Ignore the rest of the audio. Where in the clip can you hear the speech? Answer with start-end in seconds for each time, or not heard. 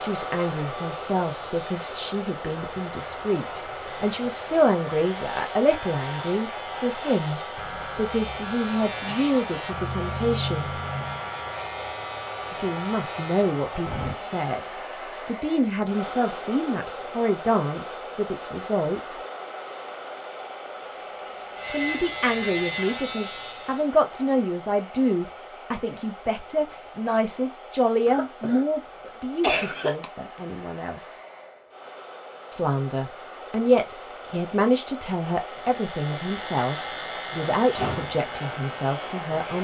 0.0-10.8, 12.5-14.6, 15.2-19.1, 21.7-31.1, 32.5-39.6.